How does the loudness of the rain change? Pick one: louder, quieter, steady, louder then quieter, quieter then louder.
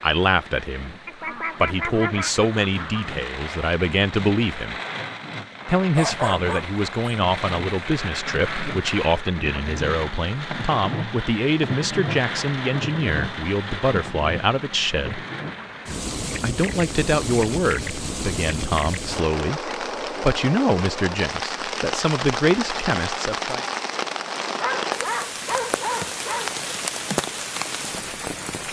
louder.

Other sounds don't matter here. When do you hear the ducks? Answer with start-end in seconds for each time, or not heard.
1.1-3.1.